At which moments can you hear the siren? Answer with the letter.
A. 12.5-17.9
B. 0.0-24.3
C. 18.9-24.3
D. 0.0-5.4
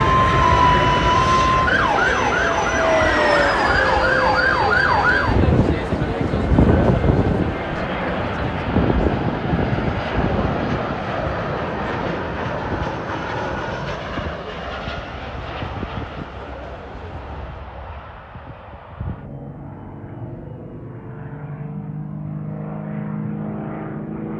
D.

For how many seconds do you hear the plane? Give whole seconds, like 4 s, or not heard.
24 s.